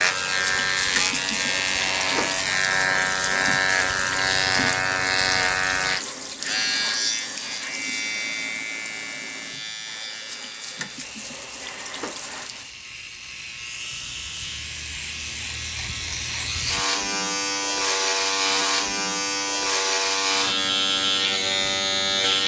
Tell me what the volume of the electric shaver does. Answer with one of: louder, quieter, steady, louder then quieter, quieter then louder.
quieter then louder.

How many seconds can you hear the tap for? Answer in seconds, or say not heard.
13 s.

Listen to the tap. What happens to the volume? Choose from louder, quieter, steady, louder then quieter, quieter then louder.
quieter.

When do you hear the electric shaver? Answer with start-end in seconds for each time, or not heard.
0.0-22.4.